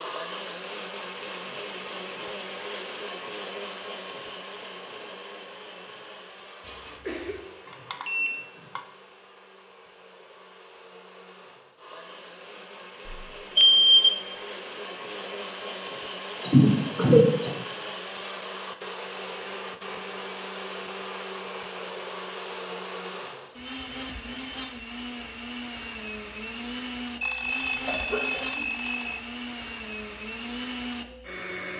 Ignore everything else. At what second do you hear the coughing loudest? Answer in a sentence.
The loudest moment of the coughing is at 17 seconds.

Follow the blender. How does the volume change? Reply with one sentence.
The loudness of the blender goes down, then up.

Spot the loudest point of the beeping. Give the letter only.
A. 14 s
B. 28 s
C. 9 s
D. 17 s
A.